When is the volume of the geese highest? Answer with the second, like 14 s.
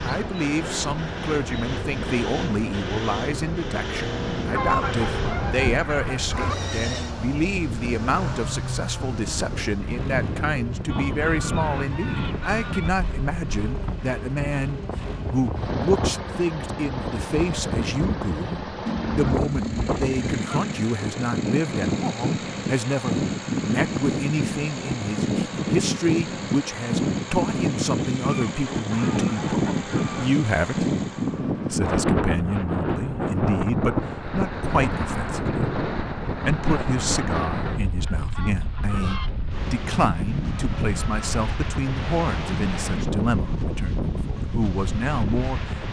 5 s.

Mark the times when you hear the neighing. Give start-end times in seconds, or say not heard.
6.5-7.2.